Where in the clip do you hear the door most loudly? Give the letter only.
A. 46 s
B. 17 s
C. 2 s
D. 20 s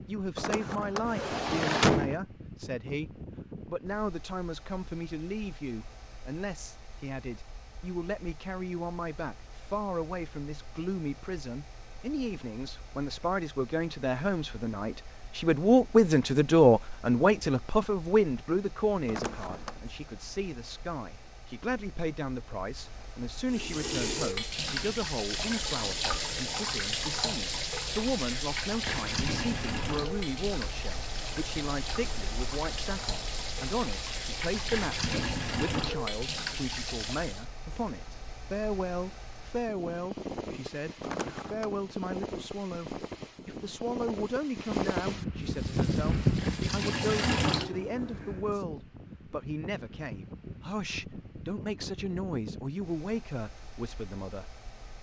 C.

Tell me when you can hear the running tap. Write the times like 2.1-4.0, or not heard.
23.5-37.5, 45.4-48.6.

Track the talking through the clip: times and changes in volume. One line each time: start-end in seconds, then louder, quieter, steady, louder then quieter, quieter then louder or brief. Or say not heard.
0.1-54.6 louder then quieter.